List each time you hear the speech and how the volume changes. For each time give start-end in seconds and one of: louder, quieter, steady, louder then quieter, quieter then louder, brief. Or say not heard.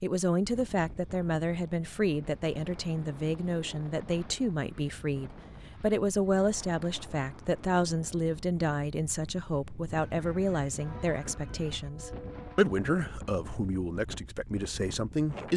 0.0-15.5 steady.